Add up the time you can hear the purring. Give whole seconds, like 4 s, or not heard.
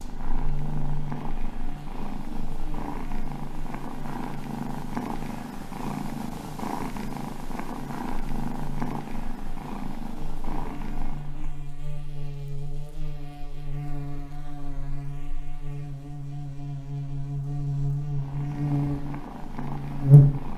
14 s.